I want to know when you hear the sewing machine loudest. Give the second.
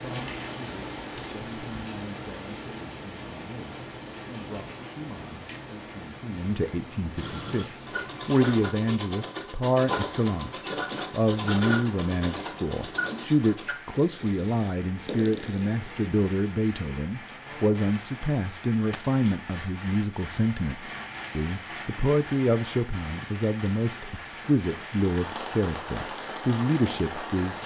11 s.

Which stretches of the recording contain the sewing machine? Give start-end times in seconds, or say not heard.
7.2-13.8.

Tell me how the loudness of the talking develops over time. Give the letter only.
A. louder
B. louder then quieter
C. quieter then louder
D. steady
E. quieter
A.